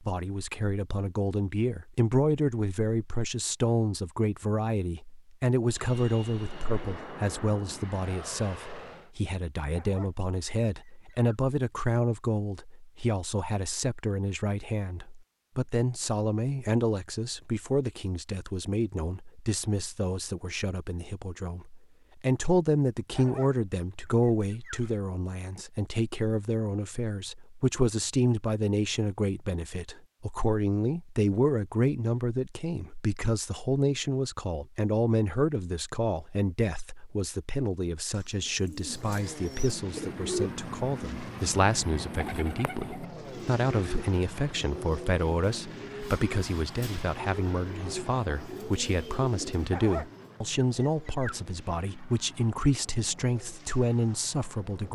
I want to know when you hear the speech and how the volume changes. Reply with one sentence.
You can hear the speech from 0.0 to 54.9 s, at a steady volume.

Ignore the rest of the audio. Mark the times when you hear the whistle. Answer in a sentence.
The whistle can't be heard in this clip.